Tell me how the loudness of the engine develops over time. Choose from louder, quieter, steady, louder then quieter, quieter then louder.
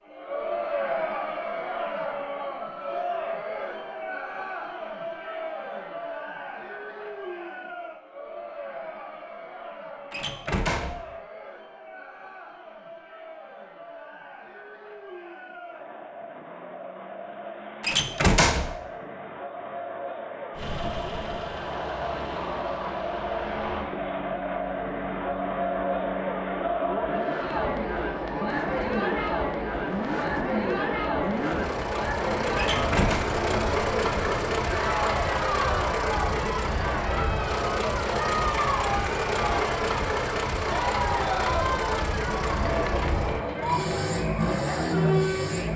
louder.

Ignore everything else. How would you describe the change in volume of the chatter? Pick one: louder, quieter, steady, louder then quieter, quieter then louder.
quieter then louder.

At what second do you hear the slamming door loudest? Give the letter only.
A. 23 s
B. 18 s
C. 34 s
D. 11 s
B.